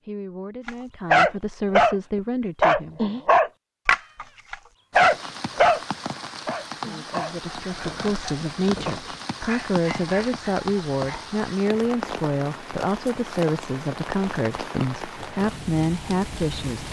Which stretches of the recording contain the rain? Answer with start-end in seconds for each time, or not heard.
4.9-16.8.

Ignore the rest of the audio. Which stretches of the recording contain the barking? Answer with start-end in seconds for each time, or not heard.
0.7-1.9, 2.6-5.8, 6.5-11.3.